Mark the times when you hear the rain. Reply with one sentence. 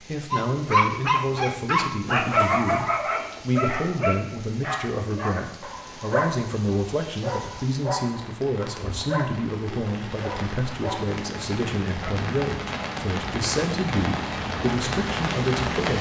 You can hear the rain from 0.0 to 15.9 s.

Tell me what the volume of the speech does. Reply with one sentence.
The volume of the speech stays about the same.